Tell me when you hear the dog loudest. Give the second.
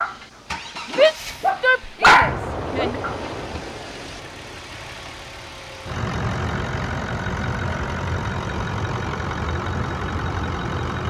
2 s.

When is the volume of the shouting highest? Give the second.
1 s.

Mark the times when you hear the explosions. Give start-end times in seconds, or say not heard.
2.2-4.6.